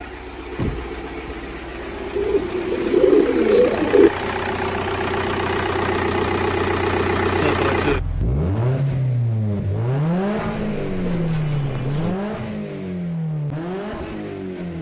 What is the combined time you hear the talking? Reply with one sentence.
You can't hear the talking here.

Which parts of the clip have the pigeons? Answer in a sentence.
You can hear the pigeons from 2.1 to 4.1 s and from 10.5 to 12.2 s.